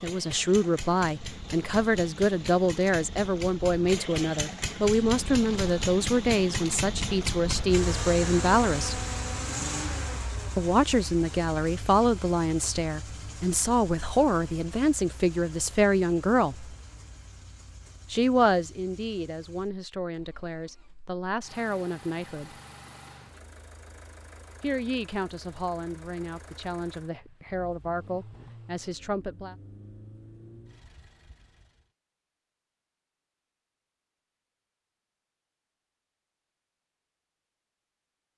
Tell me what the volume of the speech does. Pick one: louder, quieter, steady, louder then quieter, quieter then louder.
quieter.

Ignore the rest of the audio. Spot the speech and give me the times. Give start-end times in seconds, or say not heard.
0.0-9.1, 10.6-16.8, 18.1-22.6, 24.6-29.6.